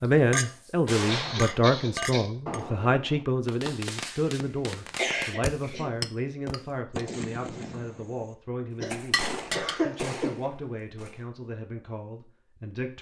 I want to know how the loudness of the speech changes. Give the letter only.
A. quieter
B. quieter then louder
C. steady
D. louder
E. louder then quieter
A.